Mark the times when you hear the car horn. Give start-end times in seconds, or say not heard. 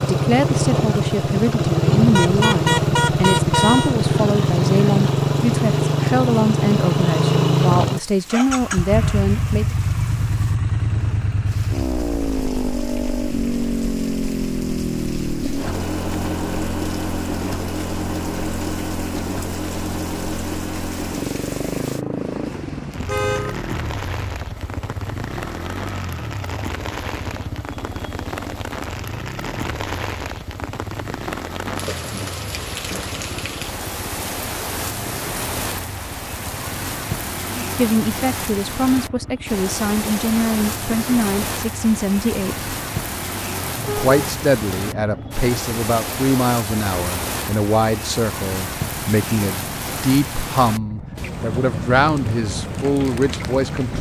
2.1-4.0, 23.1-23.6, 43.6-45.5.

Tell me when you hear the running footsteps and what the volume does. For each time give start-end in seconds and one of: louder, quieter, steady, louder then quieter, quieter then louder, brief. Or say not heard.
not heard.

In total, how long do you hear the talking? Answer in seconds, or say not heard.
25 s.